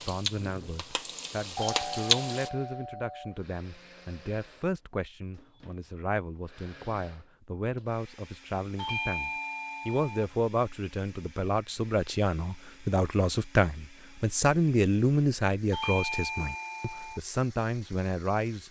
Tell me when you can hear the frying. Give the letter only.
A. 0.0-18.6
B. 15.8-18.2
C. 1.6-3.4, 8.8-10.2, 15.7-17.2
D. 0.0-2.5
D.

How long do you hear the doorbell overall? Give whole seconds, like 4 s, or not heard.
5 s.